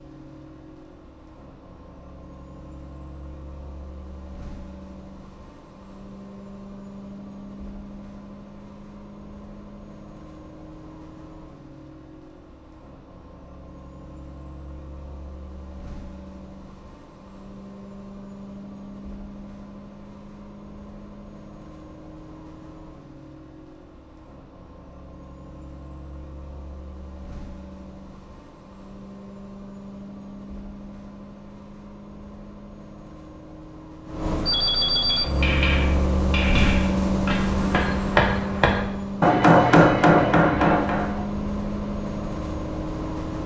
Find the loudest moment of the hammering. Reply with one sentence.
The volume of the hammering peaks at 40 seconds.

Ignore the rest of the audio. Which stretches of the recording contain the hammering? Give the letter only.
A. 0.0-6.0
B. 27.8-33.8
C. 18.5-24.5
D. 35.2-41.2
D.